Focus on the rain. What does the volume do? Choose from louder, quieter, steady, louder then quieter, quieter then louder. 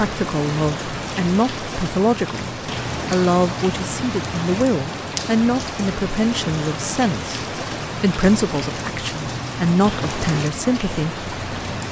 steady.